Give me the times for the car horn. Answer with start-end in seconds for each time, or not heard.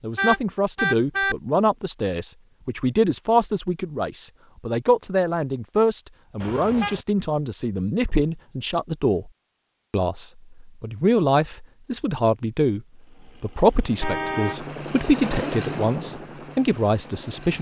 0.1-1.4, 6.4-7.0, 14.0-14.7.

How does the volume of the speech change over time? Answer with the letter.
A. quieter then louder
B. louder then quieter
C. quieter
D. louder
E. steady
E.